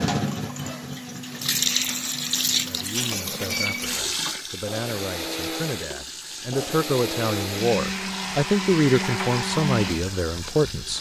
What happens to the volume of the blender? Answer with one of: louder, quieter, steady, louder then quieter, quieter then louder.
louder.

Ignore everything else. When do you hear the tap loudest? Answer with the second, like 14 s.
2 s.